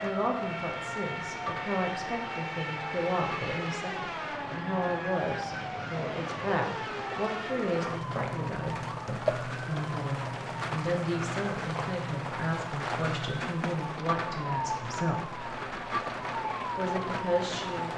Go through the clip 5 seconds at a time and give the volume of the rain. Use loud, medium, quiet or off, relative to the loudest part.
medium, loud, loud, loud.